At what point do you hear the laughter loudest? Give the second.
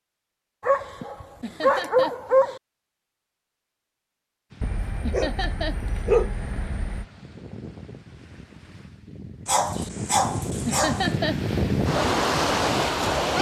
11 s.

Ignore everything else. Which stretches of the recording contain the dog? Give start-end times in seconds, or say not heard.
0.6-2.6, 4.6-7.0, 9.4-11.1.